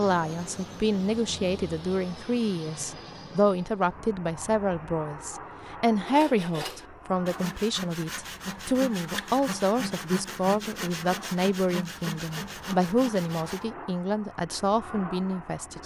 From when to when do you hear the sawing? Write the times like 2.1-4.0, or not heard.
6.0-13.7.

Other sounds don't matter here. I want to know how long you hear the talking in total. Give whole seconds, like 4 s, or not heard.
16 s.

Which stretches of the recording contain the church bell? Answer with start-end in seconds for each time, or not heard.
not heard.